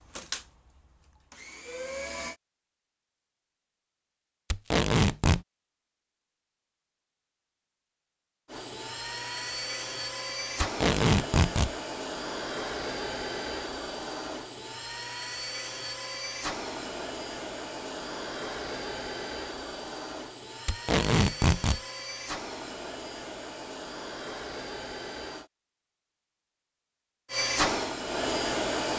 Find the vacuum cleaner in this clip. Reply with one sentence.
You can hear the vacuum cleaner from 0.0 to 2.4 s, from 8.4 to 25.5 s and from 27.3 to 28.9 s.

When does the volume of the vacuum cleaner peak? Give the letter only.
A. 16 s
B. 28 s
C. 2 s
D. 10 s
B.